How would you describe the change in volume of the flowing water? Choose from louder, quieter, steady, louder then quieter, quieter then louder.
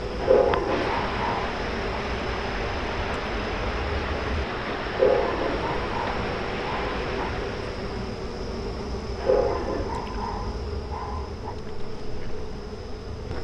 steady.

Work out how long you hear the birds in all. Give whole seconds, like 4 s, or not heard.
not heard.